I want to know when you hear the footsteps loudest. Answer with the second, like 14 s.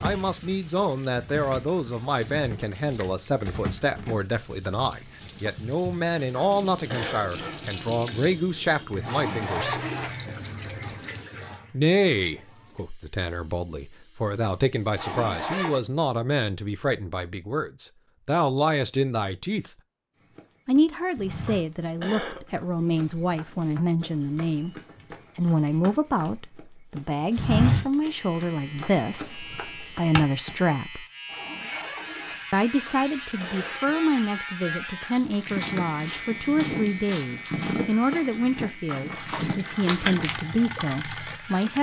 28 s.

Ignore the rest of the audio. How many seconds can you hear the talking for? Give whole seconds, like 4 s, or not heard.
37 s.